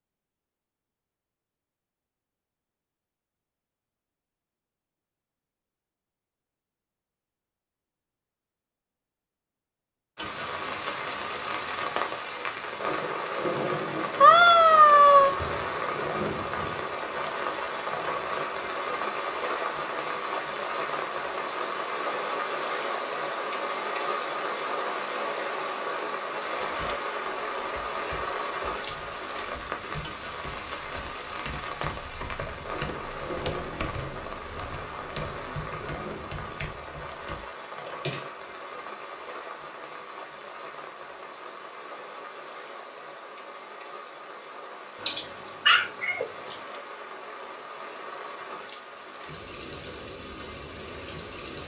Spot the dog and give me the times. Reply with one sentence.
The dog can't be heard in this clip.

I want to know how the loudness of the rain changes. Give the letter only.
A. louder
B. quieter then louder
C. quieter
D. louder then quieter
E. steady
C.